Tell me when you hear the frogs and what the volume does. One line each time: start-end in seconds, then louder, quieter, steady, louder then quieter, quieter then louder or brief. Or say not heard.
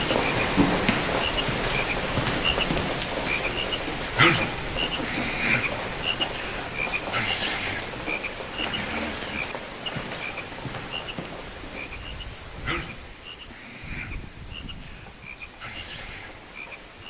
0.0-17.0 quieter.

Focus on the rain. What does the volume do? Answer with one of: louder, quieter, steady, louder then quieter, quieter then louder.
quieter.